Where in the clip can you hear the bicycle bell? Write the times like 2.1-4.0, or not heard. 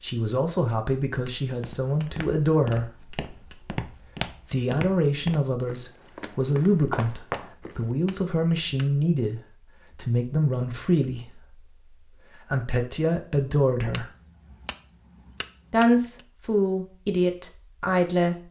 1.2-3.6, 7.3-8.9, 13.9-16.2.